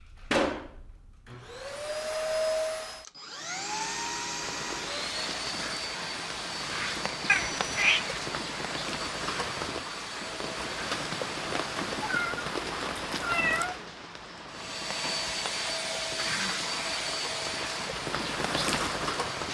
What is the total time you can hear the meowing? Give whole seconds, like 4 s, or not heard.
3 s.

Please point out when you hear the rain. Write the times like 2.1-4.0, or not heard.
4.4-19.4.